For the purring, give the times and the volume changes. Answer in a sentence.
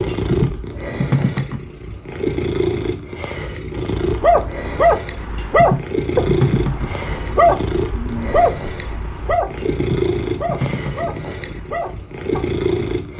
You can hear the purring from 0.0 to 13.1 s, at a steady volume.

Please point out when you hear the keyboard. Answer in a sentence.
The keyboard can be heard from 0.1 to 1.6 s, from 5.3 to 6.9 s and from 9.6 to 11.6 s.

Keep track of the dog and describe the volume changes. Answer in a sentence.
The volume of the dog goes down.